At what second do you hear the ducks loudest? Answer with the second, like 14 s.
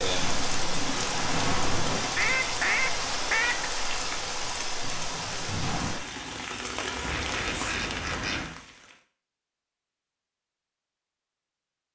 3 s.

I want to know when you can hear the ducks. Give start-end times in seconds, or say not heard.
2.1-3.7, 7.0-8.6.